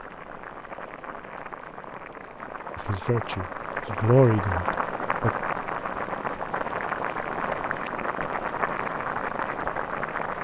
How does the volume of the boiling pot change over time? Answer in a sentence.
The loudness of the boiling pot goes up.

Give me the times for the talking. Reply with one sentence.
The talking can be heard from 2.8 to 5.3 s.